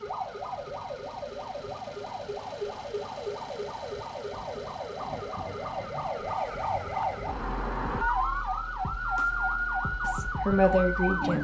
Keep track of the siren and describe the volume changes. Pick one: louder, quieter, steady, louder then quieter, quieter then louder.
louder.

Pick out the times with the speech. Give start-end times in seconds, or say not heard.
10.0-11.4.